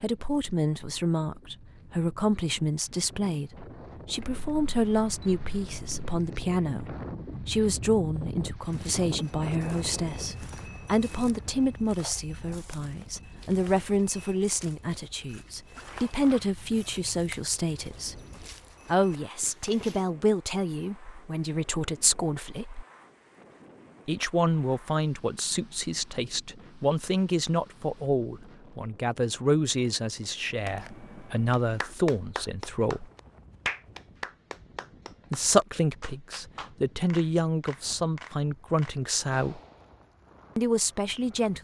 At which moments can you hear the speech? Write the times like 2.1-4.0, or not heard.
0.0-18.1, 18.9-22.9, 24.1-33.1, 35.3-39.6, 40.5-41.5.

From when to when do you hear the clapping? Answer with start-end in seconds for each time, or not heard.
31.5-40.2.